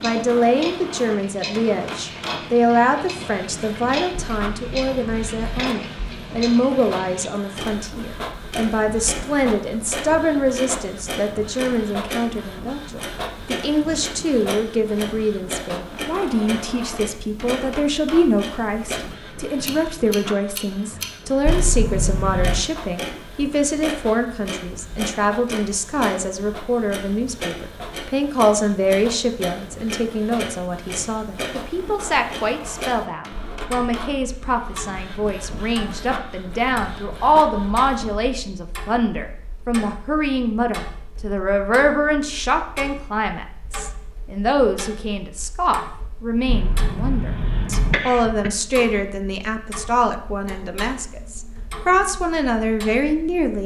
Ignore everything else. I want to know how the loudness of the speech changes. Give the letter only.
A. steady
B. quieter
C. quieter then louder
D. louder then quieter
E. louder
A.